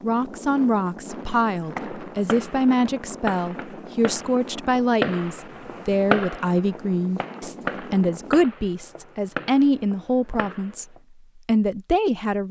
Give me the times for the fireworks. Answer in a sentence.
The fireworks can be heard from 1.4 to 11.0 s.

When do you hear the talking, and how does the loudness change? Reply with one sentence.
The talking can be heard from 0.0 to 10.8 s, at a steady volume; and briefly from 11.4 to 12.4 s.